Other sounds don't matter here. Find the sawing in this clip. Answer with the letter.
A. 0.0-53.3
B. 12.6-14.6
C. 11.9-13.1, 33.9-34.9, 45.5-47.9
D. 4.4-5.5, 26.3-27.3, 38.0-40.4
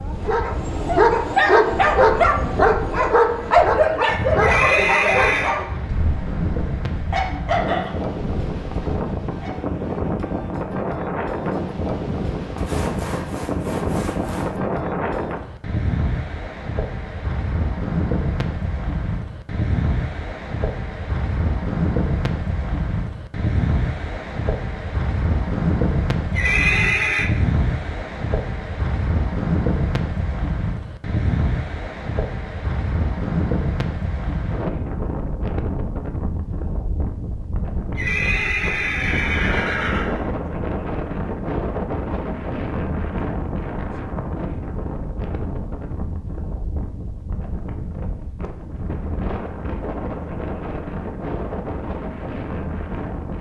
B.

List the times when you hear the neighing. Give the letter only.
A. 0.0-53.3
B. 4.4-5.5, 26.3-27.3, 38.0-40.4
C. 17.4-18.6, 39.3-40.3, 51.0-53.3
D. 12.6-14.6
B.